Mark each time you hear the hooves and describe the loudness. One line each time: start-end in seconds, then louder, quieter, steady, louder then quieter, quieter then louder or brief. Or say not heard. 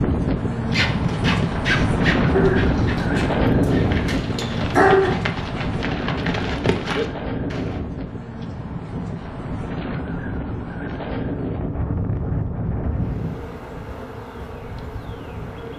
0.7-7.8 quieter then louder.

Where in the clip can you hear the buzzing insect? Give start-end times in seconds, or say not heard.
12.9-15.7.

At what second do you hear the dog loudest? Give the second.
5 s.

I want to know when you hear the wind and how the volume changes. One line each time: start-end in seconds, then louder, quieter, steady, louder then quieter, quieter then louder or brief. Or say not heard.
0.0-15.7 quieter.